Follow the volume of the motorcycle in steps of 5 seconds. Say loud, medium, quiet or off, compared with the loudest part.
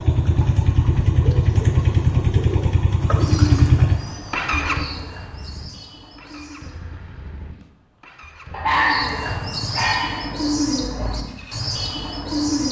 loud, quiet, quiet.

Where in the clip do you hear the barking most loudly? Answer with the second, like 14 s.
9 s.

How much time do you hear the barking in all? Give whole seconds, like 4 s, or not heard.
2 s.